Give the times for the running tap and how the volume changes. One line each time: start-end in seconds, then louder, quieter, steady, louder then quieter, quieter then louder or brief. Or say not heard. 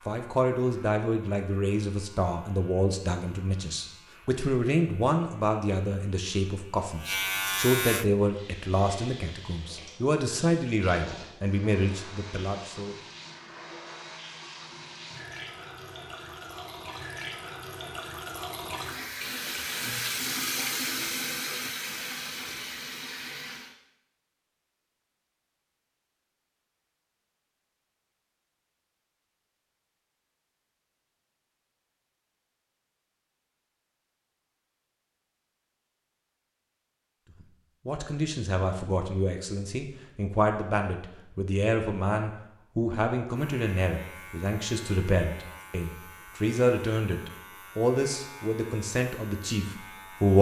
8.2-23.8 louder.